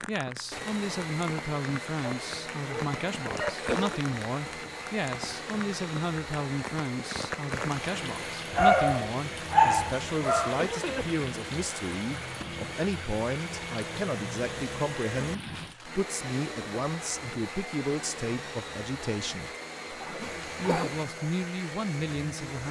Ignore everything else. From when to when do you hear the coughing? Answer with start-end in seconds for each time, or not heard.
3.5-4.0, 10.5-11.2, 20.1-20.9.